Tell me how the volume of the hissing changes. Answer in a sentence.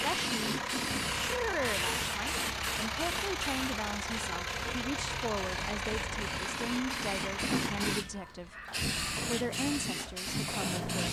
The loudness of the hissing goes down, then up.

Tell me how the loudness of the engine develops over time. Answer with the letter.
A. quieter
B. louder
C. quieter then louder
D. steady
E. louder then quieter
A.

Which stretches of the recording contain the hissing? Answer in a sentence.
The hissing can be heard from 0.0 to 11.0 s.